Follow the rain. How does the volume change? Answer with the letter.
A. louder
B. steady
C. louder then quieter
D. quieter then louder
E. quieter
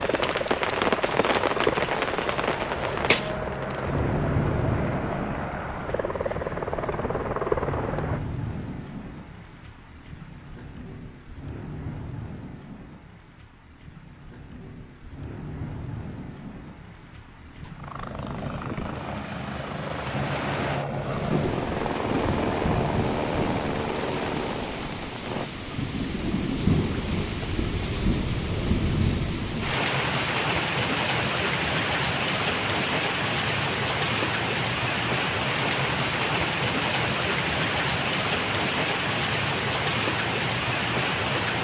D.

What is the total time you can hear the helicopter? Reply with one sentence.
You can hear the helicopter for 16 seconds altogether.